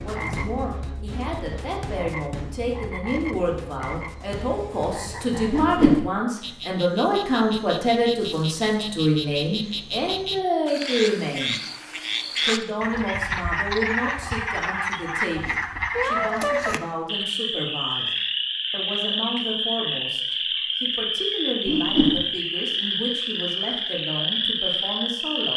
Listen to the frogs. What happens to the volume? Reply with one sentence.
The volume of the frogs goes up.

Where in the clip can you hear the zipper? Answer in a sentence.
The zipper can't be heard in this clip.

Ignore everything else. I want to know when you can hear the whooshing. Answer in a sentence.
The whooshing can be heard from 5.5 to 6.0 s and from 21.6 to 22.2 s.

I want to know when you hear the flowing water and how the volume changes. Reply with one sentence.
The flowing water can't be heard in this clip.